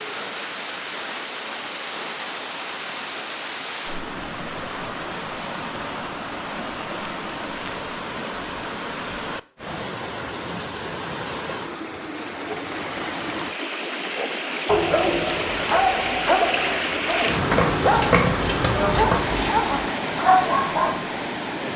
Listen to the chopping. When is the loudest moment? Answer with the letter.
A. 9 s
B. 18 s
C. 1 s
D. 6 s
B.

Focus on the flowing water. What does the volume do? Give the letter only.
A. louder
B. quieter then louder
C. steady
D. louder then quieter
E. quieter
A.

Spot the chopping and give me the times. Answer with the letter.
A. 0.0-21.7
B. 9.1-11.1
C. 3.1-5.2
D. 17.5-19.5
D.